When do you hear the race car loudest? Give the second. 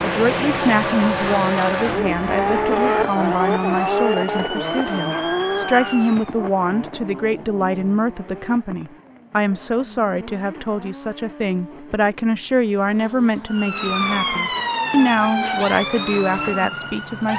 3 s.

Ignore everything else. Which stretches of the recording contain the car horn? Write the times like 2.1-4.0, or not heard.
not heard.